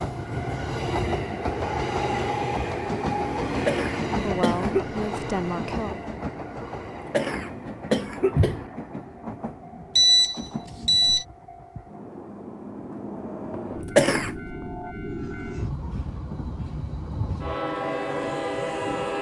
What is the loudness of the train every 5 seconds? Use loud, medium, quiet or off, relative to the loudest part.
loud, medium, medium, loud.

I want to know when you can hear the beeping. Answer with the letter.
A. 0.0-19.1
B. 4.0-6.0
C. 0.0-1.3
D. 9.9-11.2
D.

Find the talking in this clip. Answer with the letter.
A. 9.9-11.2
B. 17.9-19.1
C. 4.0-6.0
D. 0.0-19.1
C.